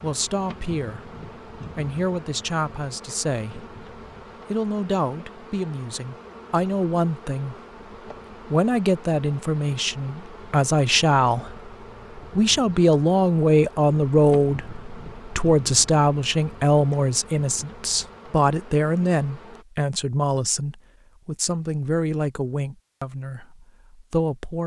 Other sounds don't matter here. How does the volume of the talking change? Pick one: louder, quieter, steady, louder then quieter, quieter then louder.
louder then quieter.